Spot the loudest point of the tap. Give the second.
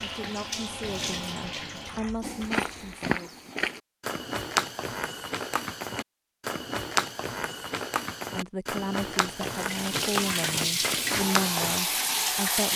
12 s.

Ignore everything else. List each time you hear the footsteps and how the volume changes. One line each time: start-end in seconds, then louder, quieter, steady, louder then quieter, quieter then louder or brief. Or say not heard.
2.2-11.8 steady.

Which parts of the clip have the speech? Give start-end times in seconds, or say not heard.
0.0-3.4, 8.3-12.7.